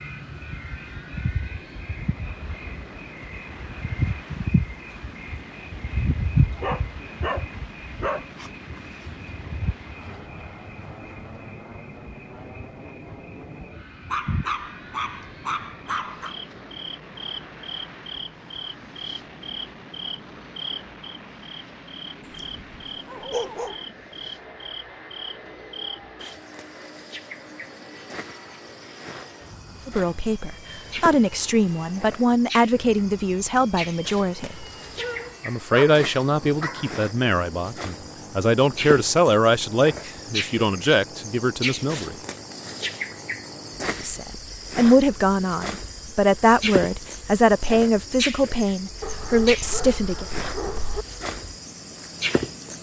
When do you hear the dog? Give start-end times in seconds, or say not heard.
6.5-8.2, 14.1-16.4, 22.2-23.8, 35.0-37.0, 49.0-51.0.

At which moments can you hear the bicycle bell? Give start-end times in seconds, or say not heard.
not heard.